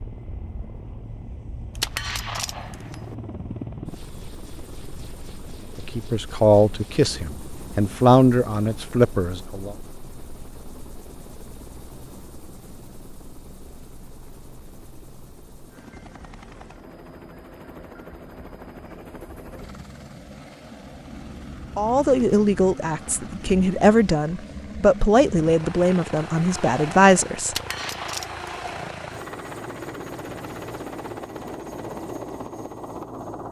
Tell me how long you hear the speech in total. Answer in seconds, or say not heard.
10 s.